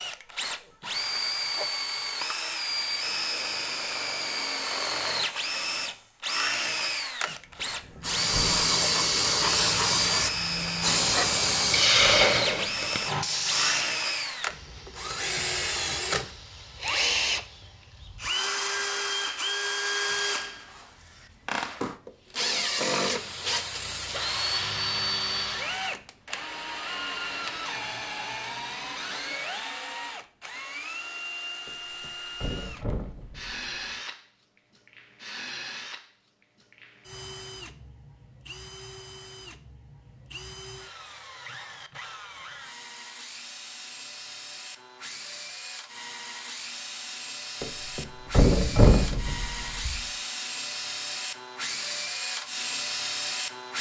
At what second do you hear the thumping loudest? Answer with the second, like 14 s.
49 s.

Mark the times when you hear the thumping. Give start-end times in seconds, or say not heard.
7.5-8.8, 31.6-33.6, 47.6-50.0.